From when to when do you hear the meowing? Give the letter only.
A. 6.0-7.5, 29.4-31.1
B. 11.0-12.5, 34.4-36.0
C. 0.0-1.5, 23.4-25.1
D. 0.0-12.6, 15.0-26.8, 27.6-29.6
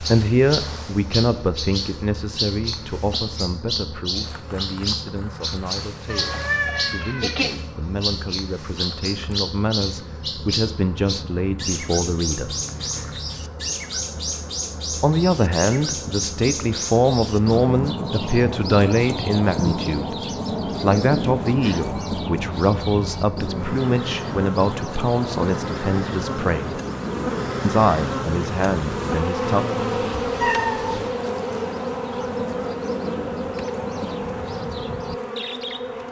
A.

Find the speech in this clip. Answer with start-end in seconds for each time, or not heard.
0.0-12.6, 15.0-26.8, 27.6-29.6.